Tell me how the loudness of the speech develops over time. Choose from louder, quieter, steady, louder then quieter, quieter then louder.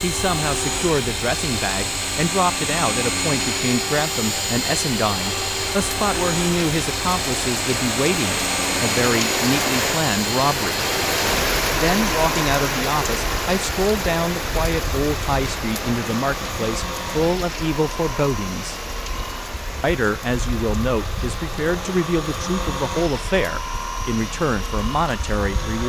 steady.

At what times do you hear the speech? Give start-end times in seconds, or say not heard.
0.0-10.8, 11.8-18.8, 19.8-25.8.